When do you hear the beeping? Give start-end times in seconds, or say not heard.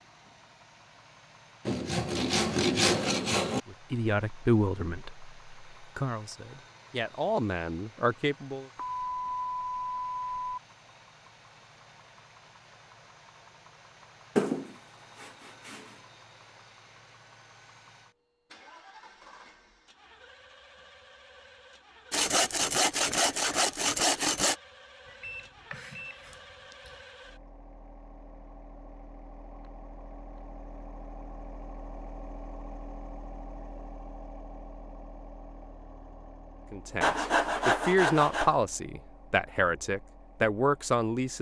8.8-10.6, 25.1-26.9.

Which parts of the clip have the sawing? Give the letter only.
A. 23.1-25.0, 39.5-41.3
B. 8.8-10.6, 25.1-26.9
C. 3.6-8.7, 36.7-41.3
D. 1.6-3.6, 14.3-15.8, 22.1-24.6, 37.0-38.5
D.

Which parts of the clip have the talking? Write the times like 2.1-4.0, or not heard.
3.6-8.7, 36.7-41.3.